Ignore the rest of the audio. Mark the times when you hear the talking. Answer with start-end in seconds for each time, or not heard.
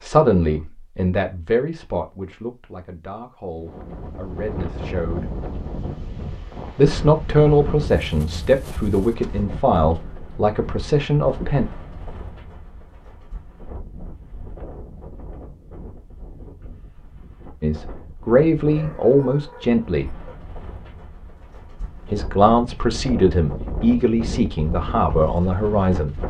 0.0-5.2, 6.8-11.7, 17.6-20.1, 22.1-26.2.